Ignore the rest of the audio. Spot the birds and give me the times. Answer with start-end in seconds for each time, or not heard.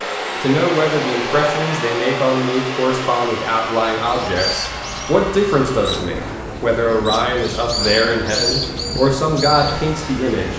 3.9-10.5.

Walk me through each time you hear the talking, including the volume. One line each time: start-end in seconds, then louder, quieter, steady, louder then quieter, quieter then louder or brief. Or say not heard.
0.4-10.5 steady.